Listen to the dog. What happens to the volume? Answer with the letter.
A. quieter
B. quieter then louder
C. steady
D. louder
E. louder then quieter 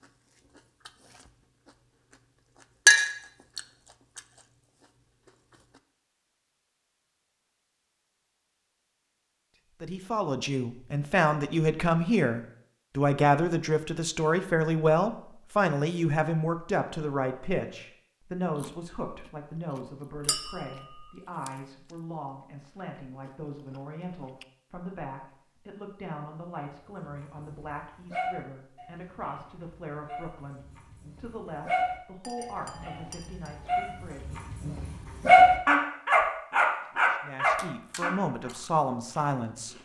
B.